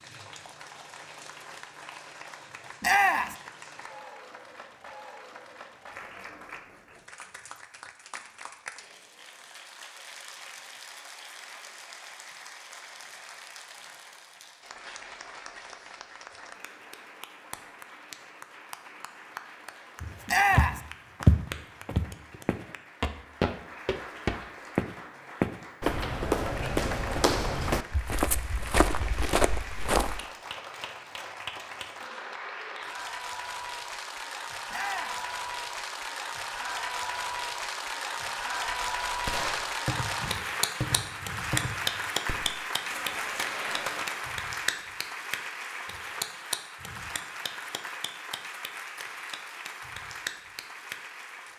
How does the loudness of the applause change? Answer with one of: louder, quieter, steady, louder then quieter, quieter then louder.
louder.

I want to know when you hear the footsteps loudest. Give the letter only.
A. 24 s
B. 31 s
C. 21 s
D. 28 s
C.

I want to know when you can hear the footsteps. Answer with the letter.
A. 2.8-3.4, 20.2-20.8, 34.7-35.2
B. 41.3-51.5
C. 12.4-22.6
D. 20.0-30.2
D.